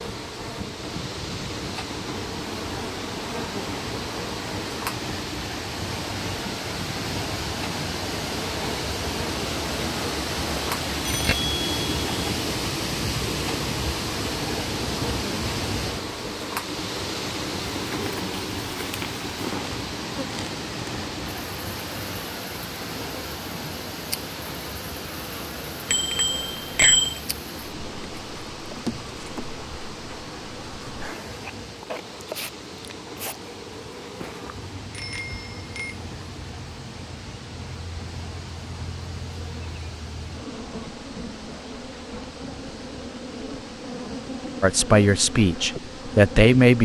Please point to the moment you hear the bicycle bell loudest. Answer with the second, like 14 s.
27 s.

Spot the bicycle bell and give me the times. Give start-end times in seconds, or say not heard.
11.1-12.3, 25.9-27.2, 34.9-36.0.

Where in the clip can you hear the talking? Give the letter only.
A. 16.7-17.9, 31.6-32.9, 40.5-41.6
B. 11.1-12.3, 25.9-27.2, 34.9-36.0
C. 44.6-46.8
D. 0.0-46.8
C.